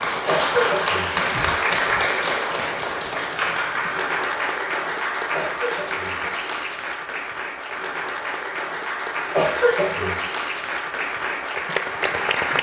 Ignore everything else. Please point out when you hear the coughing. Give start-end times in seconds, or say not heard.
0.2-1.3, 5.3-6.5, 9.3-10.2.